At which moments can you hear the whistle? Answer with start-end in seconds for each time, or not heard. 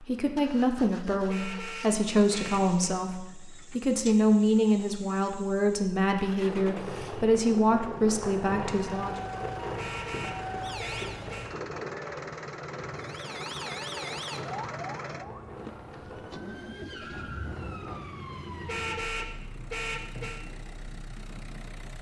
not heard.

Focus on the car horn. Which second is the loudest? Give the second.
19 s.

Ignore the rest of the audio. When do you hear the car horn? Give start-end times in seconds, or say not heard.
1.2-3.0, 9.8-11.5, 18.6-20.4.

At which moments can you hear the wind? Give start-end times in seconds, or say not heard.
6.4-21.9.